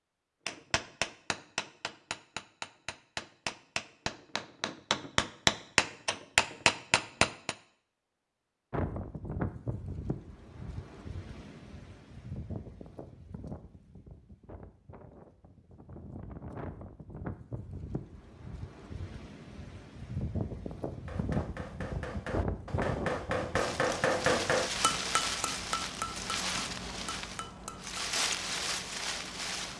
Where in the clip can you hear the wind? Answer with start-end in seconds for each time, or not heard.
8.7-29.7.